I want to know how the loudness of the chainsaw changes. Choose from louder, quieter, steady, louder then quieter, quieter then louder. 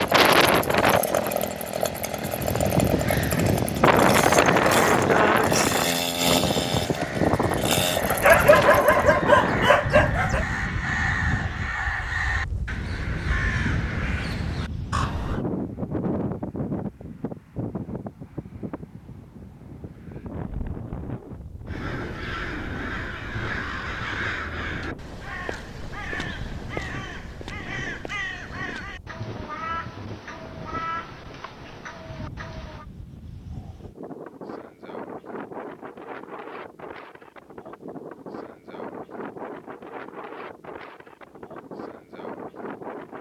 steady.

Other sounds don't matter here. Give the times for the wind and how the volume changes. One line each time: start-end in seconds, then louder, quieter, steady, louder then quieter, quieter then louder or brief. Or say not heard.
0.0-43.1 quieter.